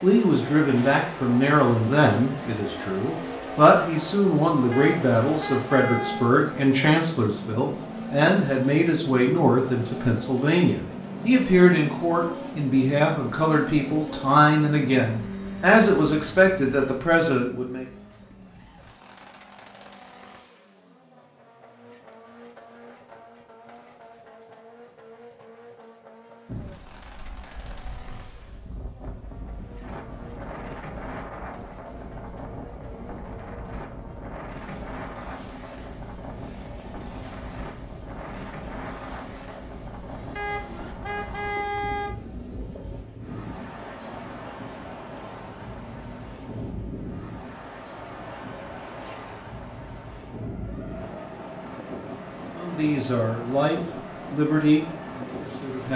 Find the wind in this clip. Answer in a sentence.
You can hear the wind from 26.4 to 55.9 s.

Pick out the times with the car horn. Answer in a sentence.
The car horn can be heard from 4.7 to 6.3 s and from 40.4 to 42.2 s.